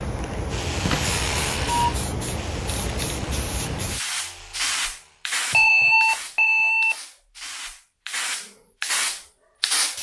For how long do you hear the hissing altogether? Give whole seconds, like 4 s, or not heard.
10 s.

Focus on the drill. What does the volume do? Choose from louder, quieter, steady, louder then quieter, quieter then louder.
quieter.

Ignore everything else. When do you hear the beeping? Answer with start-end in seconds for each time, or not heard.
0.8-1.9, 5.5-7.0.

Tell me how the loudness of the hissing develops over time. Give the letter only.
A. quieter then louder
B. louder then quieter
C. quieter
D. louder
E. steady
A.